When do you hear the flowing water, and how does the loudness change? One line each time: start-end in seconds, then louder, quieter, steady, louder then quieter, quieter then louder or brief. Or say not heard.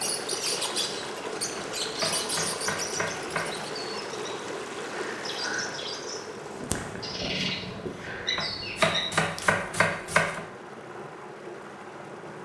0.0-12.4 quieter.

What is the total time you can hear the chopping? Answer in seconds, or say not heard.
4 s.